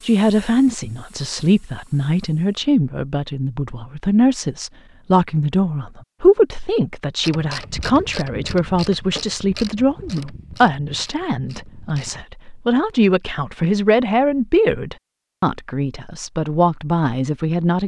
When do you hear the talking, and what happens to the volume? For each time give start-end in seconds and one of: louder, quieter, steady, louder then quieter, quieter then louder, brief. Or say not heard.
0.0-17.8 steady.